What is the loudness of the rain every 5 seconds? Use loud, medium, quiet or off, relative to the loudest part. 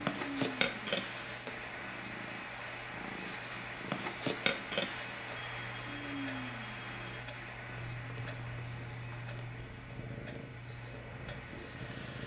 loud, loud, medium.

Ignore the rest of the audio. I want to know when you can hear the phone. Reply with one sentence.
You can hear the phone from 5.3 to 7.2 s.